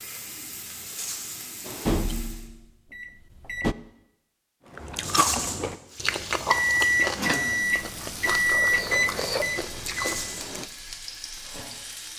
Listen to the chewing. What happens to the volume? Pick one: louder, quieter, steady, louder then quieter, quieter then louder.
quieter then louder.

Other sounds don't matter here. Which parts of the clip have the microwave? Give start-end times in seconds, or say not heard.
1.6-3.8, 6.5-10.7.